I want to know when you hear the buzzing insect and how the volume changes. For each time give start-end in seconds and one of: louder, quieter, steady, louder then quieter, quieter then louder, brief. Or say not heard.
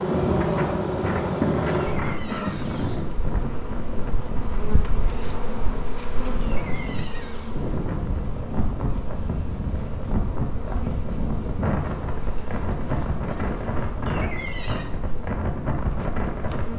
0.0-16.7 quieter.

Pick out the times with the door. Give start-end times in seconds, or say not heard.
1.7-3.0, 6.4-7.5, 14.1-14.9.